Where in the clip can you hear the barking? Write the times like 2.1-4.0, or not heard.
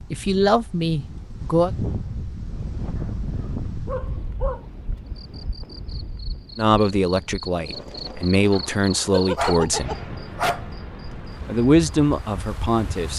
3.0-4.7, 9.1-10.7.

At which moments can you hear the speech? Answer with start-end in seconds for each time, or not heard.
0.1-1.7, 6.5-10.0, 11.4-13.1.